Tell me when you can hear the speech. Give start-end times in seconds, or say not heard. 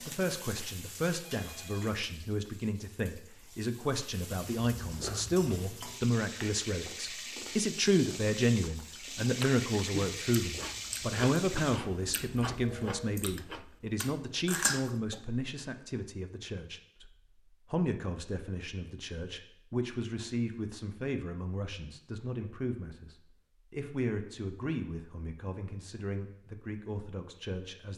0.0-17.1, 17.7-27.9.